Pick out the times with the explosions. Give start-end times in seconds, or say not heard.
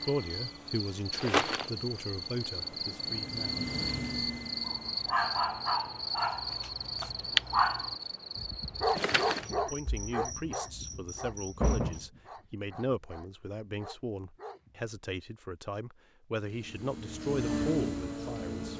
not heard.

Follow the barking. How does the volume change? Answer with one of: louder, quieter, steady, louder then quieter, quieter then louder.
quieter.